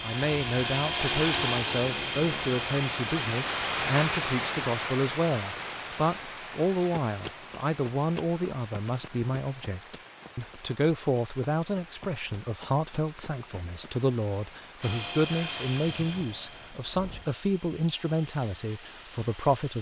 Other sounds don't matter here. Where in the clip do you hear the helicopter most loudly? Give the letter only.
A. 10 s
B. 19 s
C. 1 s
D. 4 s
C.